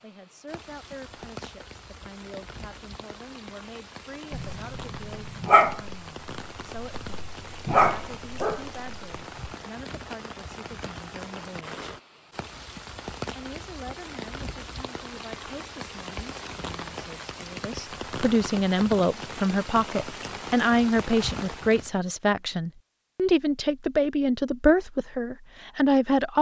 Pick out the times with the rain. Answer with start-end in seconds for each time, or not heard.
0.0-22.0.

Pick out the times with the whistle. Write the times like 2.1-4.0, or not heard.
not heard.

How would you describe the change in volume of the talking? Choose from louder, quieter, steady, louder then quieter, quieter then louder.
louder.